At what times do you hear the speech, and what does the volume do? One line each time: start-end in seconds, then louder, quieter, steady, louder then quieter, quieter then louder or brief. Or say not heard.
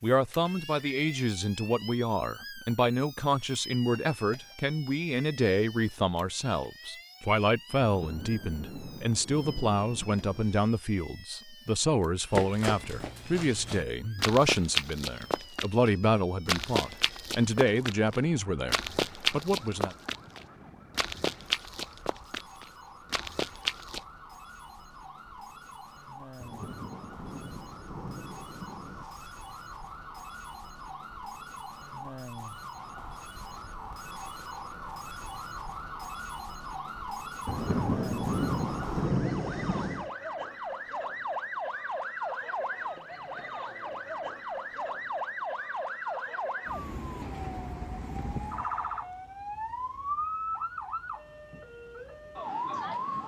0.0-19.9 steady.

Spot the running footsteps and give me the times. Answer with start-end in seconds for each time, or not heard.
12.3-24.0.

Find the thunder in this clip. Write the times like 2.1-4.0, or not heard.
7.8-10.7, 26.4-29.3, 37.5-40.1.